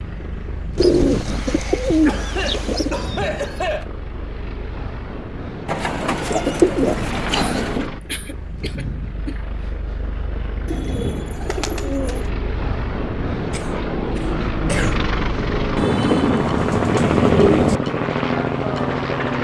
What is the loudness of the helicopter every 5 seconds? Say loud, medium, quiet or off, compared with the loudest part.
quiet, medium, medium, loud.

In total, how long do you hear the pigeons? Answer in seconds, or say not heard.
8 s.